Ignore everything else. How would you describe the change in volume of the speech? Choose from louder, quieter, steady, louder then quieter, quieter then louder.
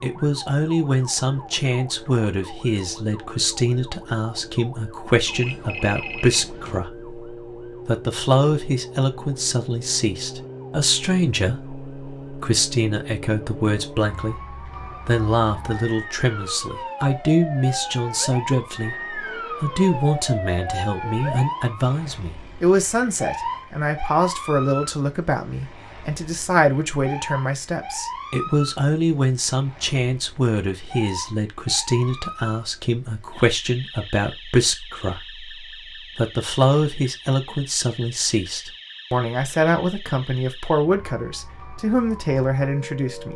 steady.